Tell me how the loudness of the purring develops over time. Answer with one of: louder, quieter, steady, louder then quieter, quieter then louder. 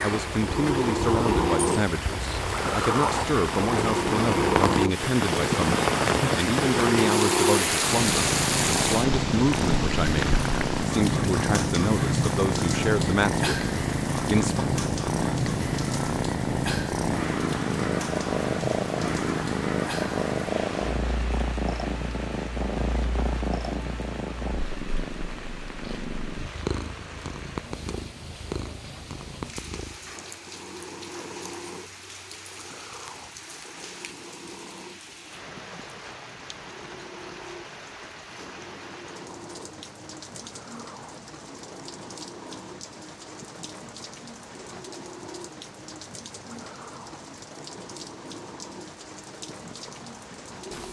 quieter.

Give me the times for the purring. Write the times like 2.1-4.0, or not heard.
0.0-50.8.